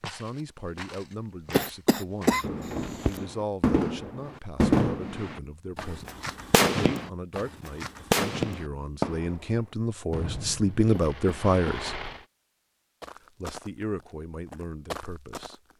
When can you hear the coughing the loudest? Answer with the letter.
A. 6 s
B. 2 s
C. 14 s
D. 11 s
B.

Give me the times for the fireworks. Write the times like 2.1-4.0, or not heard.
2.4-12.2.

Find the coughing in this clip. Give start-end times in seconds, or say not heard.
1.5-3.2, 10.9-11.8.